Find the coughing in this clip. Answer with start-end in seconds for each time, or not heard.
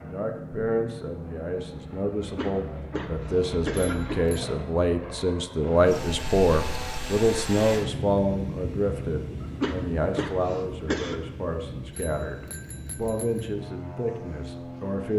2.1-4.2, 9.4-11.2.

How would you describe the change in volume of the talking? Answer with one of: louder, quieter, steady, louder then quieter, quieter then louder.
louder then quieter.